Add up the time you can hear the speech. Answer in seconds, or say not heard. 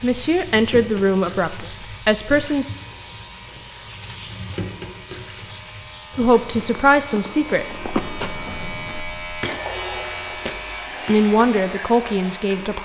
6 s.